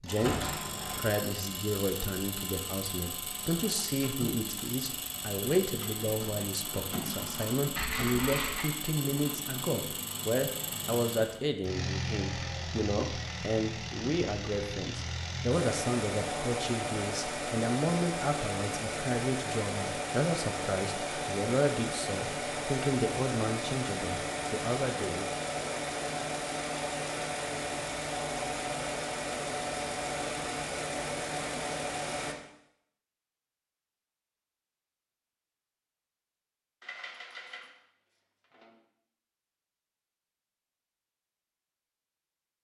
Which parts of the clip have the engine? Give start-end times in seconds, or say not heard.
0.0-32.4.